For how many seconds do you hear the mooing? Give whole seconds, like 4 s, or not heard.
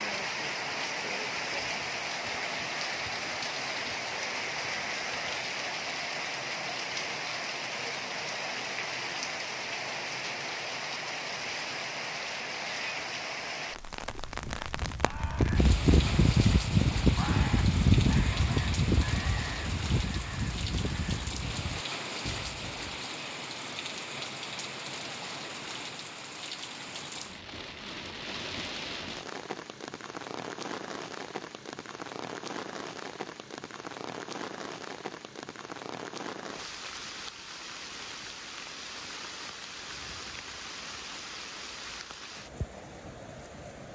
not heard.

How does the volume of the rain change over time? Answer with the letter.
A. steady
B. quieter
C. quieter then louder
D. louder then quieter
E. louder
B.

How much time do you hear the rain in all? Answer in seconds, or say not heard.
44 s.